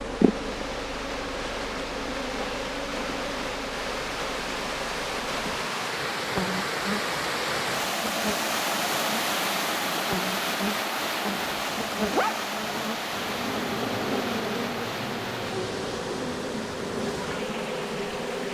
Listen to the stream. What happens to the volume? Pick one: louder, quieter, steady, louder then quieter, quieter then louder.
louder then quieter.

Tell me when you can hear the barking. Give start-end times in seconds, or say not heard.
11.2-12.8.